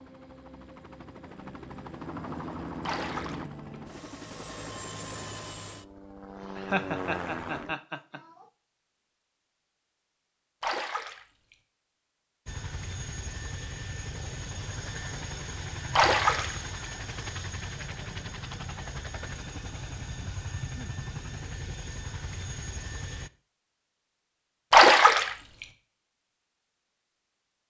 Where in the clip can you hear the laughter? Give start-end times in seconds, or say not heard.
6.4-8.4.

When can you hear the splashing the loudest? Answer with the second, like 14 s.
25 s.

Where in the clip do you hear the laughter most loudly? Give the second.
7 s.